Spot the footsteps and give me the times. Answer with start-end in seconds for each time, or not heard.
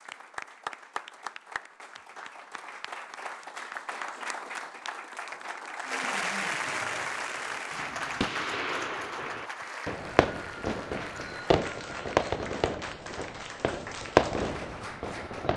not heard.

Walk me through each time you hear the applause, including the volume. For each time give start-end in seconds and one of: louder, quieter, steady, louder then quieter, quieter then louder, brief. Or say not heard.
0.0-15.5 louder then quieter.